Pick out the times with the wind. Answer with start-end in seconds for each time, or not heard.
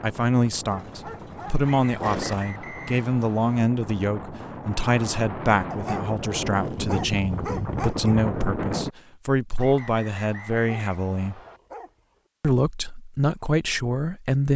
0.0-8.9.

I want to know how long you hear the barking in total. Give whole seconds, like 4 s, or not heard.
6 s.